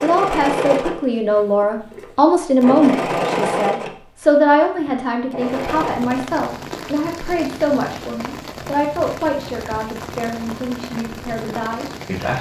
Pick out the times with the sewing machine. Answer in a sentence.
The sewing machine can be heard from 0.0 to 6.0 s.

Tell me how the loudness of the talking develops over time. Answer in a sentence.
The loudness of the talking goes down.